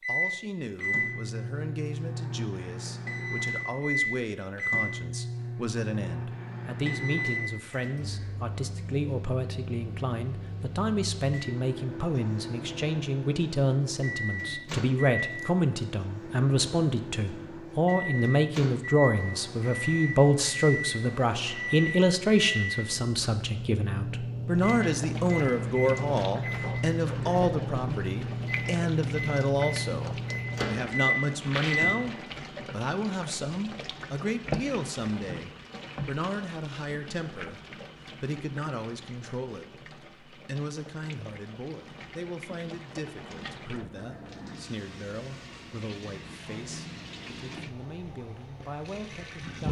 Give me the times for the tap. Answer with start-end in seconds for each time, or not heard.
24.5-49.6.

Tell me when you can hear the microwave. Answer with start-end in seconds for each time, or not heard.
0.0-31.9.